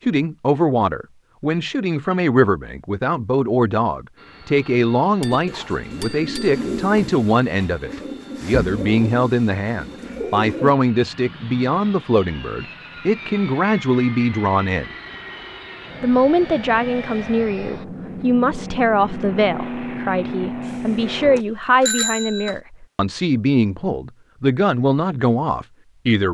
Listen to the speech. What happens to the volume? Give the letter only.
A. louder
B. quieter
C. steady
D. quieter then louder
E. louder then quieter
C.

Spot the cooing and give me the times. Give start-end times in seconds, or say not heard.
5.3-10.8.